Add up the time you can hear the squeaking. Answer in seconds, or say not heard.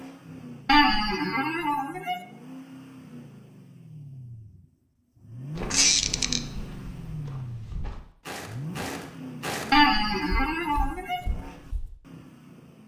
4 s.